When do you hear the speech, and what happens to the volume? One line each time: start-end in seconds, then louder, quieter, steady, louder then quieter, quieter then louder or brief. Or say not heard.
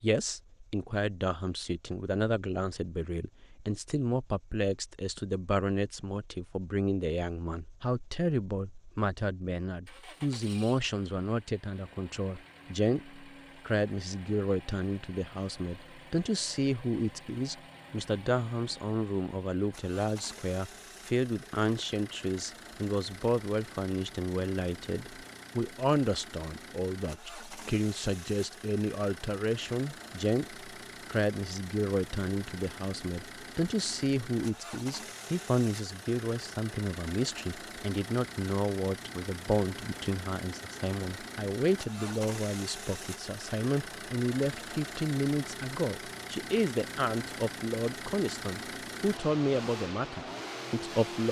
0.0-51.2 steady.